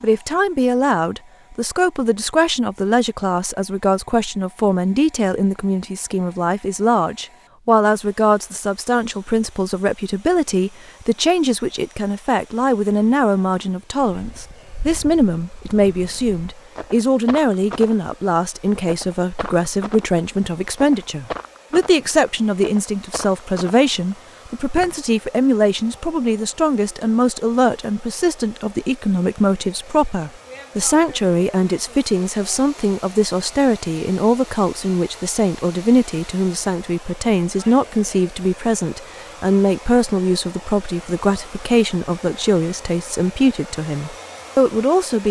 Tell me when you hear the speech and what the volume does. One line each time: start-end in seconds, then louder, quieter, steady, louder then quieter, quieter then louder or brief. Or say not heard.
0.0-45.2 steady.